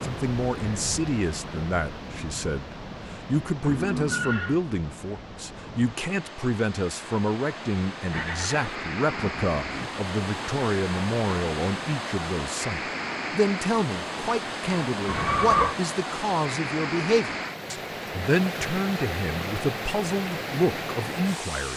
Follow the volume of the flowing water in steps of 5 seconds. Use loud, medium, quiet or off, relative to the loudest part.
medium, medium, loud, loud, loud.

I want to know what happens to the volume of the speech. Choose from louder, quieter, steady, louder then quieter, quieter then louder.
steady.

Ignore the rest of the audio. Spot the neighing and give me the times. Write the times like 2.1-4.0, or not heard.
3.6-4.6, 8.1-9.9, 15.1-15.8.